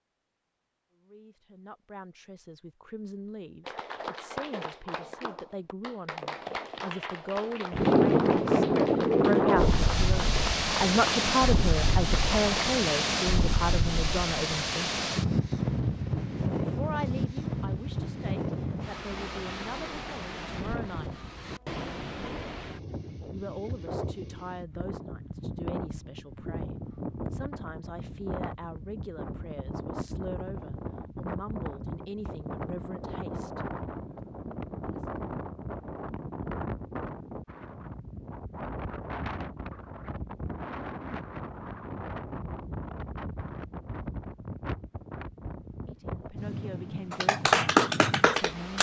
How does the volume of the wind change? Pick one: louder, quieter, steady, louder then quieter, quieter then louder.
quieter.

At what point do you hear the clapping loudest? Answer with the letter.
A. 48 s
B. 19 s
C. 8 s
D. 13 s
A.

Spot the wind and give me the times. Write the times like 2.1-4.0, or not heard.
7.7-48.7.